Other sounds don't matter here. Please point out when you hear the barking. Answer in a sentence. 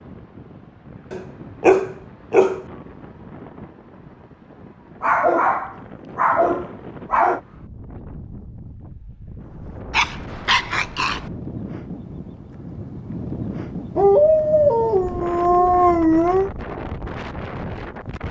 You can hear the barking from 1.1 to 2.6 s, from 5.0 to 7.4 s, from 9.9 to 11.2 s and from 13.9 to 16.5 s.